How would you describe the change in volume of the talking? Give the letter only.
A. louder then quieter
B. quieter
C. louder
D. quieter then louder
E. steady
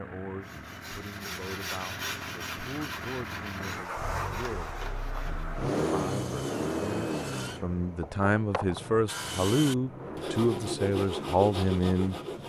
C.